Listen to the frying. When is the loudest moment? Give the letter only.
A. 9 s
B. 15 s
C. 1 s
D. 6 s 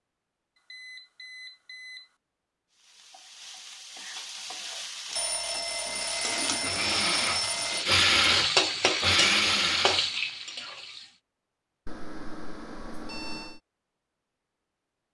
A.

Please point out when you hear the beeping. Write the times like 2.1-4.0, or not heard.
0.6-2.1, 5.2-7.8, 11.8-13.6.